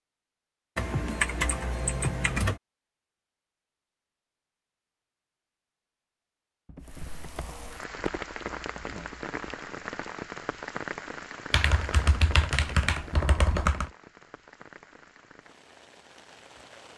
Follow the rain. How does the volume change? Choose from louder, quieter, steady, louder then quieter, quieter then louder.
quieter.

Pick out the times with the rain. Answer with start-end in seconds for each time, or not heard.
6.8-16.9.